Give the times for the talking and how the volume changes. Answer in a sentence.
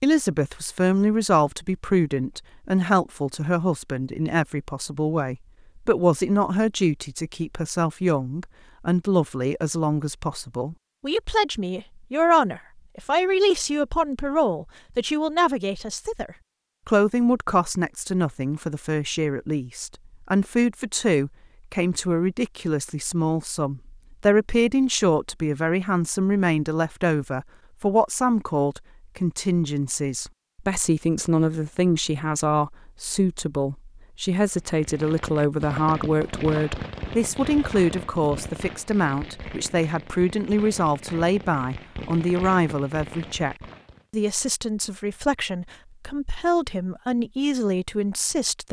You can hear the talking from 0.0 to 48.6 s, at a steady volume.